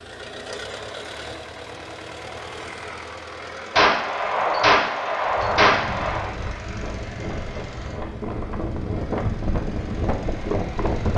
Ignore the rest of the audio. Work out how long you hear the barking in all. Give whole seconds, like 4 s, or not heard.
not heard.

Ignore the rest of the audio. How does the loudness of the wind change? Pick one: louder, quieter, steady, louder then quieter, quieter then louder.
louder.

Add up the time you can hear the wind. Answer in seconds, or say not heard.
6 s.